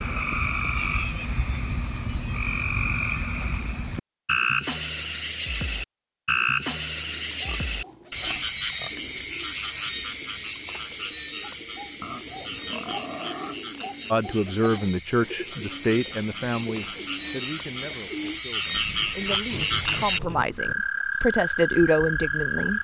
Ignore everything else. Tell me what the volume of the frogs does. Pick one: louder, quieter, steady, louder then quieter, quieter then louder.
quieter then louder.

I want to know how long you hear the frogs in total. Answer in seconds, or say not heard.
23 s.